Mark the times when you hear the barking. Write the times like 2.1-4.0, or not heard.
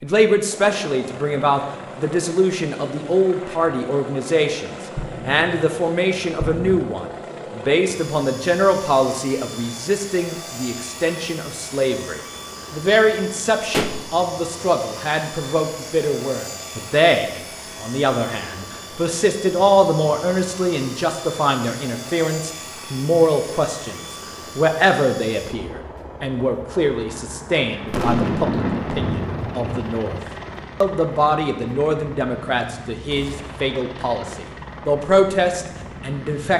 not heard.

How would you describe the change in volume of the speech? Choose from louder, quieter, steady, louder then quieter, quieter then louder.
steady.